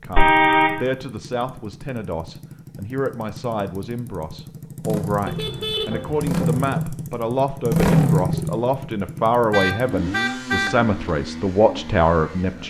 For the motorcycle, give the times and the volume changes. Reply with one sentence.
The motorcycle can be heard from 0.0 to 12.6 s, getting louder then quieter.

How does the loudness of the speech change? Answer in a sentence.
The volume of the speech goes up.